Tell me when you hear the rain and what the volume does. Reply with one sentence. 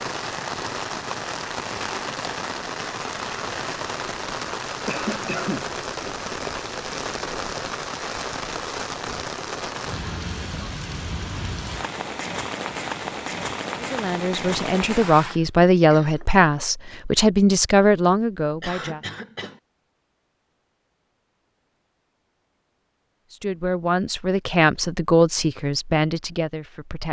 The rain can be heard from 0.0 to 15.4 s, at a steady volume.